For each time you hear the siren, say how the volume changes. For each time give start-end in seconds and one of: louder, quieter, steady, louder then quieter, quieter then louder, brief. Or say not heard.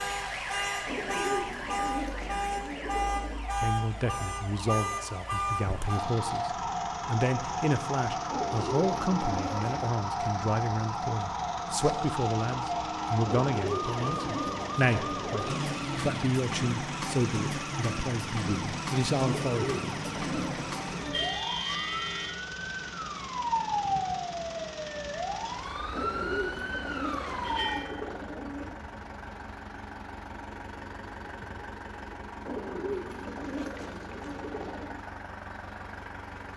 0.0-27.9 steady.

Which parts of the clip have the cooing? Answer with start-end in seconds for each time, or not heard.
0.8-3.5, 8.3-9.8, 13.2-16.1, 19.2-21.4, 25.9-28.8, 32.5-35.0.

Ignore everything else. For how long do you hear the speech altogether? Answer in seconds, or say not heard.
16 s.